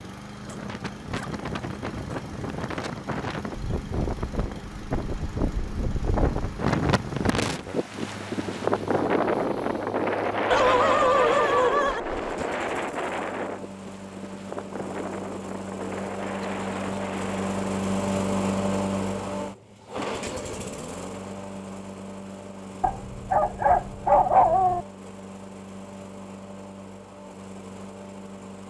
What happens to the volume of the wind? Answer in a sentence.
The volume of the wind goes up, then down.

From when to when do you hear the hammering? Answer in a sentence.
The hammering can't be heard in this clip.